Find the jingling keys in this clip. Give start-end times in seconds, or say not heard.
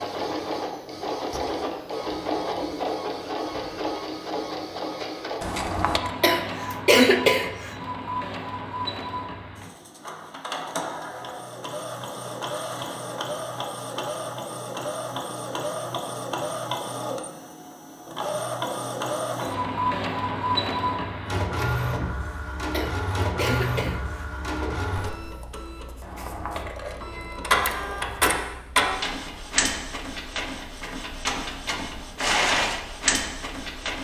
5.4-6.1, 26.0-27.4.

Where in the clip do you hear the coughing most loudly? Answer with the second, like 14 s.
7 s.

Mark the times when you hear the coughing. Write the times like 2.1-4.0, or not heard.
6.2-7.7, 22.7-24.2.